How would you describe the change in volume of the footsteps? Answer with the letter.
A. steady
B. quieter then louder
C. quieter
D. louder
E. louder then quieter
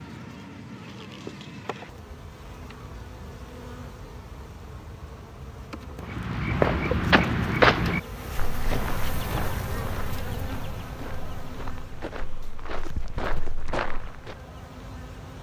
B.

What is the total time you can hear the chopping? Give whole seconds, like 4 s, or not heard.
not heard.